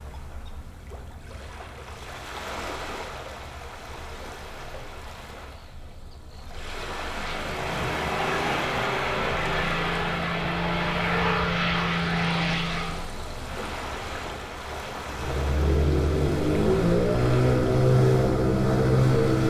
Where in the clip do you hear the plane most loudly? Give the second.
18 s.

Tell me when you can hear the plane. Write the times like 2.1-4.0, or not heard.
7.0-13.1, 15.1-19.4.